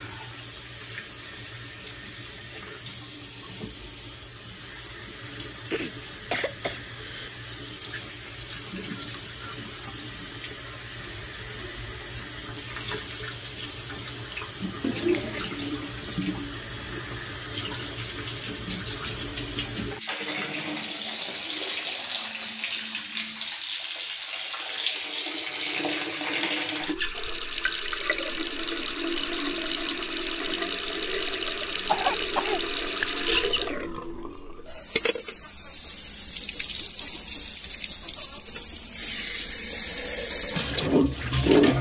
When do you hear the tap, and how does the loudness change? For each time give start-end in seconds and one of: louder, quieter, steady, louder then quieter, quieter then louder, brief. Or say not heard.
0.0-41.7 louder.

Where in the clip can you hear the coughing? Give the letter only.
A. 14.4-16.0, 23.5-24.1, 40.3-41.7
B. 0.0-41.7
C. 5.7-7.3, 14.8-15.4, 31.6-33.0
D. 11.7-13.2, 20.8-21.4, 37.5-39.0
C.